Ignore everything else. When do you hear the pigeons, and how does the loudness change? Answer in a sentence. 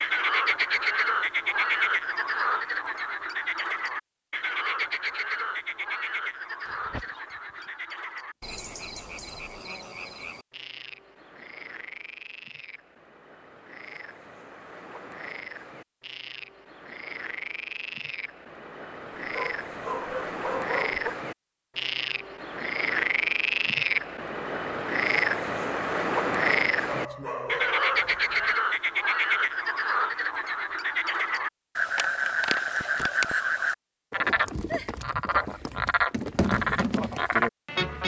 You can't hear the pigeons here.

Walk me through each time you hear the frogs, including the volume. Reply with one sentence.
The frogs can be heard from 0.0 to 38.0 s, getting quieter then louder.